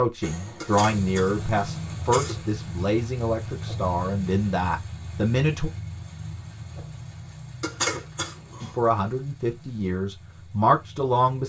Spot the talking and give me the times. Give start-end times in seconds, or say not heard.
0.0-5.7, 8.6-11.4.